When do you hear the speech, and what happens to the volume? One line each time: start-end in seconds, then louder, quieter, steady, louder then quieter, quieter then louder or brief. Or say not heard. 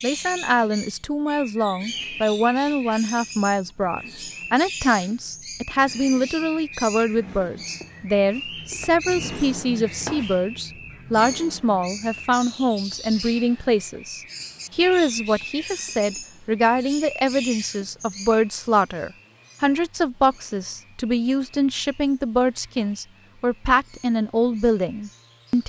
0.0-25.6 steady.